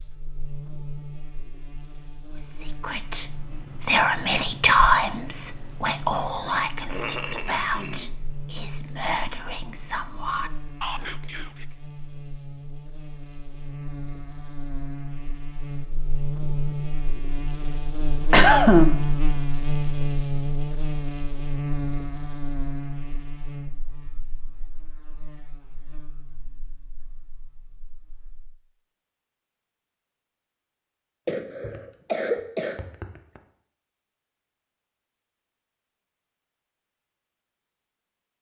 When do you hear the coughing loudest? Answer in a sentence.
The volume of the coughing peaks at 19 seconds.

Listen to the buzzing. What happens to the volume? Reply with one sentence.
The loudness of the buzzing goes up, then down.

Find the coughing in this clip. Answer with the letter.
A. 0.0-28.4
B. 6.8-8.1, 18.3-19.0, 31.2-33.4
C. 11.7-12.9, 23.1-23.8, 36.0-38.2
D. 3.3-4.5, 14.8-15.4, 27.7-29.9
B.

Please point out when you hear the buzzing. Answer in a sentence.
The buzzing can be heard from 0.0 to 28.4 s.